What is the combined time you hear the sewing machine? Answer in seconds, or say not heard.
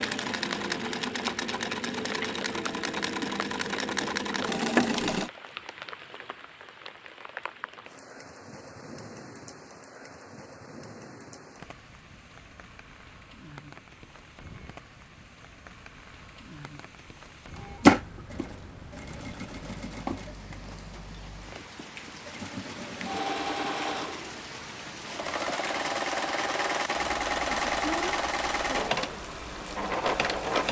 18 s.